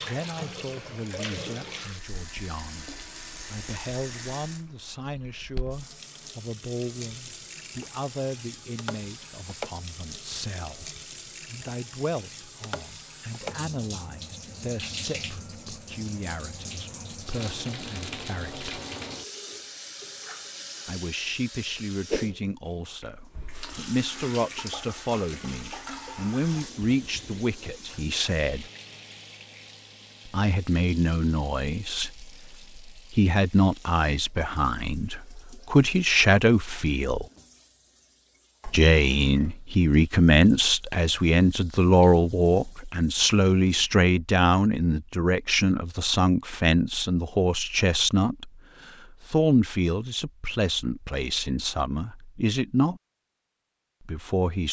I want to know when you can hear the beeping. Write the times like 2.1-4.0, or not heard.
not heard.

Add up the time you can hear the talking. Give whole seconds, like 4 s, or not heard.
48 s.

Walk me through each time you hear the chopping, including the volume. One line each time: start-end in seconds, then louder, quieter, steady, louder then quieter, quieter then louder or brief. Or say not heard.
not heard.